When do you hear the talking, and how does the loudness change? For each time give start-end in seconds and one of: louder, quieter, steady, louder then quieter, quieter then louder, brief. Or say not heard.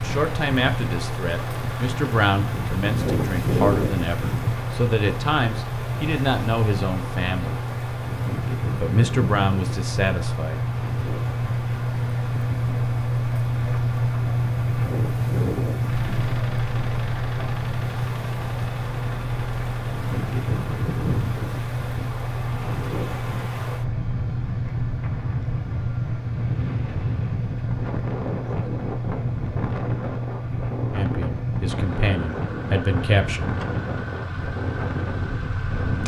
0.0-7.6 steady
8.8-10.7 brief
30.9-33.5 brief.